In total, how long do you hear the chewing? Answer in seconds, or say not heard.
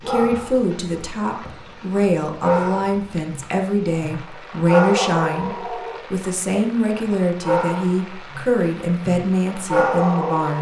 not heard.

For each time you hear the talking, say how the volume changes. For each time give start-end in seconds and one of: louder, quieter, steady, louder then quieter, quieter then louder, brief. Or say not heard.
0.0-10.5 steady.